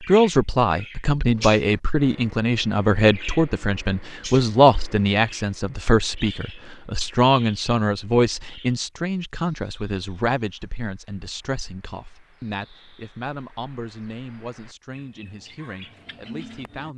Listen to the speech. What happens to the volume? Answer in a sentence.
The loudness of the speech goes down.